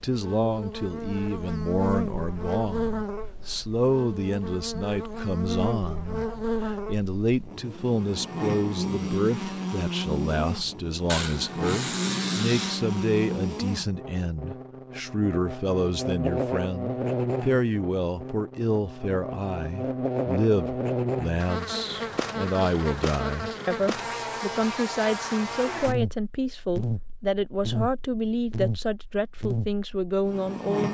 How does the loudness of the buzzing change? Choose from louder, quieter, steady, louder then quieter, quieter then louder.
steady.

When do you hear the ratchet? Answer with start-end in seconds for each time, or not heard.
11.1-12.8.